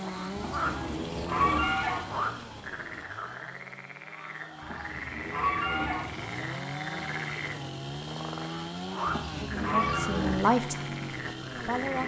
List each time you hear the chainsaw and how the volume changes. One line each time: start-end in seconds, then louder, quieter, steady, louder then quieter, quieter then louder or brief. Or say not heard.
0.0-12.0 quieter then louder.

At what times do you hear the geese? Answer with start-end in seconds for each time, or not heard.
0.1-2.0, 4.1-6.0, 8.4-10.2.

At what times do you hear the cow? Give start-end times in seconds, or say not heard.
0.3-1.7, 4.6-6.0, 9.1-10.4.